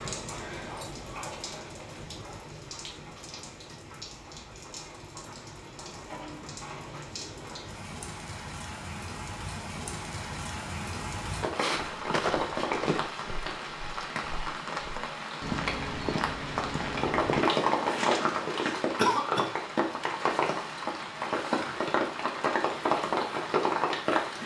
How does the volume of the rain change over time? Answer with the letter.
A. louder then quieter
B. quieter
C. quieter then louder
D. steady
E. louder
E.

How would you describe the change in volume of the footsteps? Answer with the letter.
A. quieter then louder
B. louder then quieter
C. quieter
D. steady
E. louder
A.